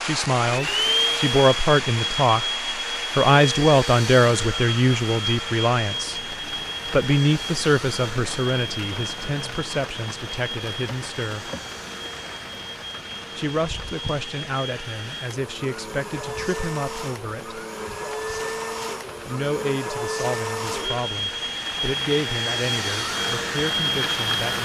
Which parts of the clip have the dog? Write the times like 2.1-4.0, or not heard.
not heard.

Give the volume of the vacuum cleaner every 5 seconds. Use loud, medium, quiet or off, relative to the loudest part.
loud, medium, medium, medium, loud.